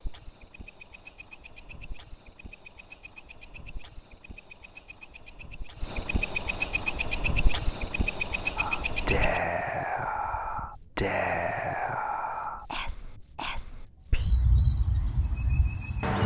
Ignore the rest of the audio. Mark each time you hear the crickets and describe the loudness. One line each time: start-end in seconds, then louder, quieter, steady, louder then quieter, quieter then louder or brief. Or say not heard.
0.0-16.2 louder.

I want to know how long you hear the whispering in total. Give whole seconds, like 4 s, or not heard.
6 s.